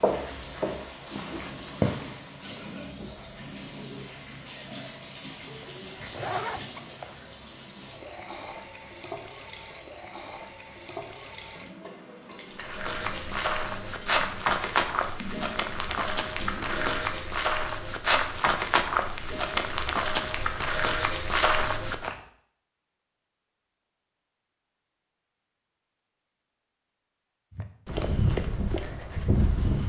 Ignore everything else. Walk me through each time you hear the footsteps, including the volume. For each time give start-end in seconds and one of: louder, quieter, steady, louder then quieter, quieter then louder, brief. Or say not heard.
0.0-2.2 brief
12.6-22.2 steady
27.6-29.8 brief.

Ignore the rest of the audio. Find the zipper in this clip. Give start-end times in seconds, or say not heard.
5.6-7.2.